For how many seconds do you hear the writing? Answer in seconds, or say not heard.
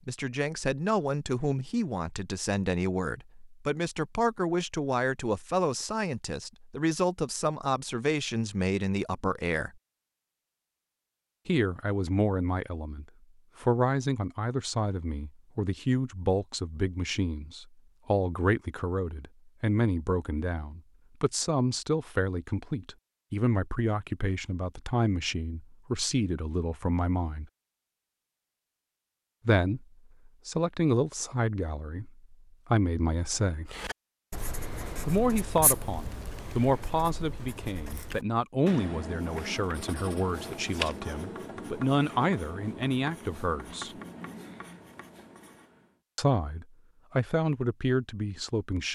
12 s.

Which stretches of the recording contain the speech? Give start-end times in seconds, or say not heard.
0.1-9.7, 11.4-27.5, 29.4-33.7, 35.0-44.0, 46.1-48.8.